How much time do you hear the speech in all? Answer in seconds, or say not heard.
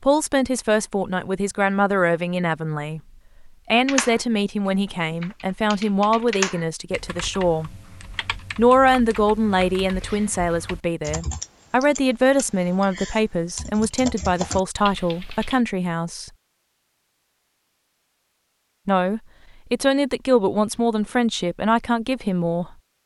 19 s.